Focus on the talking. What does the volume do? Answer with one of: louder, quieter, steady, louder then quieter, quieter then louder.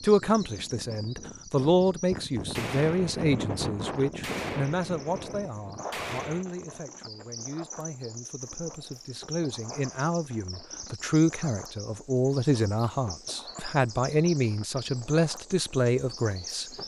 quieter then louder.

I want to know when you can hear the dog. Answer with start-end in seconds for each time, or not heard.
not heard.